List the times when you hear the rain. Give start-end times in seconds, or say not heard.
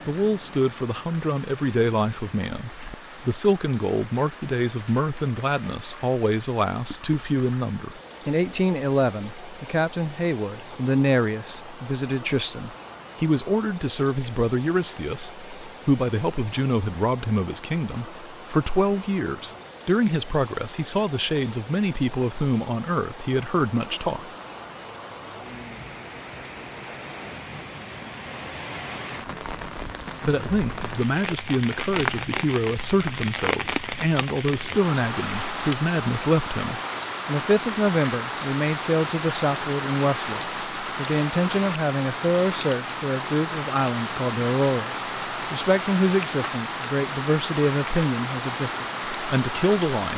0.0-50.1.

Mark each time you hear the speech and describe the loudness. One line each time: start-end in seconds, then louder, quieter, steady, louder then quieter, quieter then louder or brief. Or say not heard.
0.1-24.3 steady
30.2-50.1 steady.